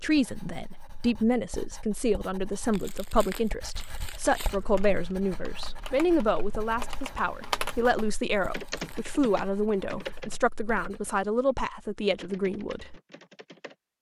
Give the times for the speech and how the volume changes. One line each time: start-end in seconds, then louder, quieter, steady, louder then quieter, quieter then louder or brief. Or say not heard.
0.0-12.9 steady.